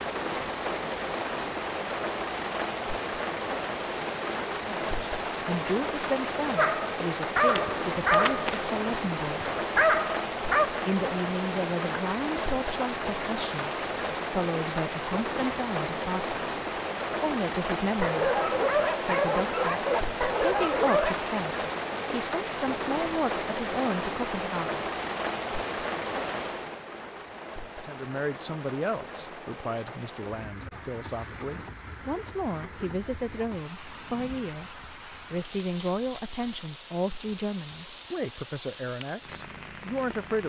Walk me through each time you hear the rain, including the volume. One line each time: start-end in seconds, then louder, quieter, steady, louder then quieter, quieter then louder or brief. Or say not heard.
0.0-40.4 quieter.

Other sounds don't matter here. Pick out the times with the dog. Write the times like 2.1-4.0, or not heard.
6.5-10.7, 18.0-21.1.